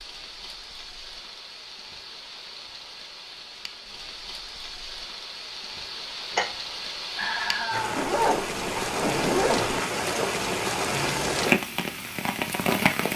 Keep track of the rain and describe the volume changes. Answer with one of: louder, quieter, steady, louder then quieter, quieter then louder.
louder.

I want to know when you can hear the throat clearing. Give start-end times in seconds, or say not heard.
not heard.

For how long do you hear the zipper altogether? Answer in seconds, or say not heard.
2 s.